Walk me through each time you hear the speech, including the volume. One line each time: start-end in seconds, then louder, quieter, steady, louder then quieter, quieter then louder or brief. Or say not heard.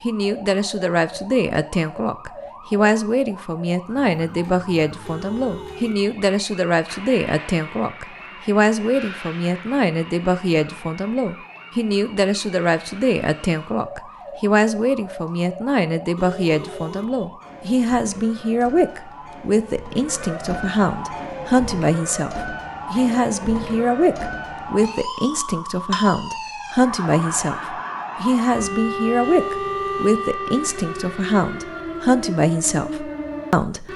0.0-33.9 steady.